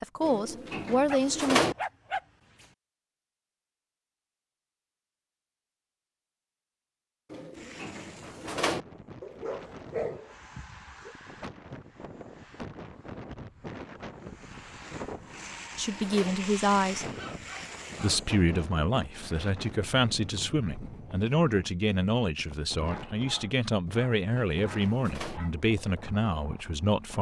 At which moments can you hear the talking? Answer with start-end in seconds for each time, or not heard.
0.0-1.6, 15.8-17.1, 17.9-27.1.